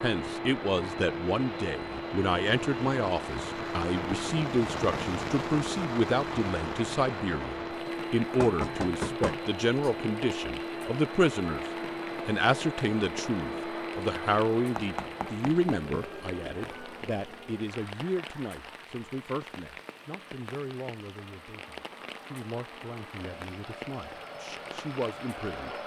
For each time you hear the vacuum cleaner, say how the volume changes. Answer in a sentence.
The vacuum cleaner can be heard from 0.0 to 25.8 s, getting quieter.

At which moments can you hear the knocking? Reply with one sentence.
You can hear the knocking from 8.4 to 9.9 s and from 14.8 to 15.8 s.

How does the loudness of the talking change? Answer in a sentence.
The loudness of the talking goes down.